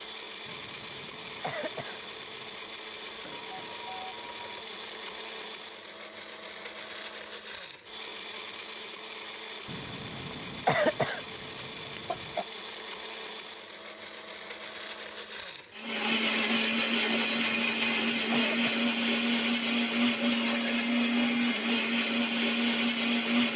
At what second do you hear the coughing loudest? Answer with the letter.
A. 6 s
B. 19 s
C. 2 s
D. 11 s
D.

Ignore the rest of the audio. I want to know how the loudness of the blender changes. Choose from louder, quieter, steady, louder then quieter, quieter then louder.
louder.